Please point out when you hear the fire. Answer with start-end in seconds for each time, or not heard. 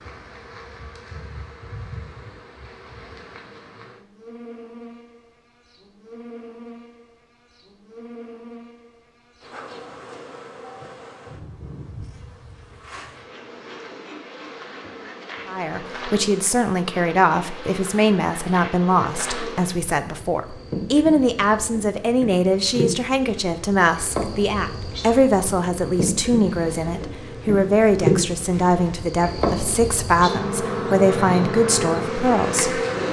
not heard.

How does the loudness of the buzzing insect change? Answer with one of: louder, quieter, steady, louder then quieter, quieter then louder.
louder.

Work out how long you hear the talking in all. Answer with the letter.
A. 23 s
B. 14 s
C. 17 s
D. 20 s
C.